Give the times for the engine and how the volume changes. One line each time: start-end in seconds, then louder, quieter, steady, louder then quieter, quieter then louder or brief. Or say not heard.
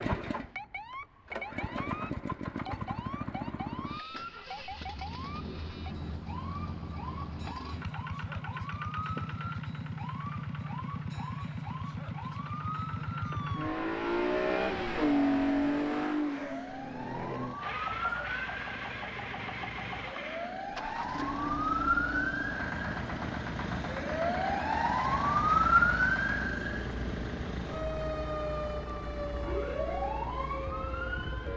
0.0-31.5 louder then quieter.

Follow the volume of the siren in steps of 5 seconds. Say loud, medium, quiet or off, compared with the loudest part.
quiet, quiet, quiet, medium, loud, loud, medium.